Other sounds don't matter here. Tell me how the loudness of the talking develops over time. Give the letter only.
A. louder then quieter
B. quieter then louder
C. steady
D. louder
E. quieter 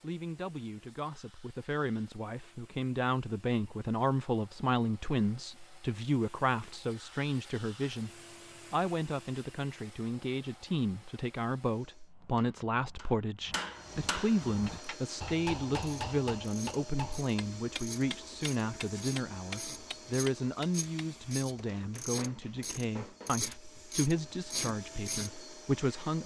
C.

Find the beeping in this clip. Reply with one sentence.
The beeping can't be heard in this clip.